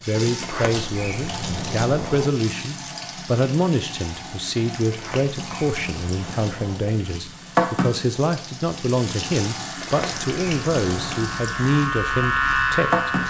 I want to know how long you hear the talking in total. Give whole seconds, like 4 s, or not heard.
13 s.